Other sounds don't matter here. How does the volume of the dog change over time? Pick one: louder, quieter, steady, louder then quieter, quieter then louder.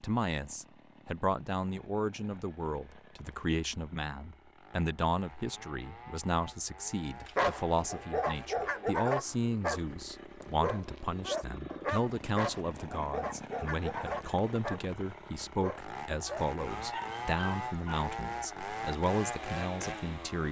quieter.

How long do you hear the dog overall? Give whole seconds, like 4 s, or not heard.
11 s.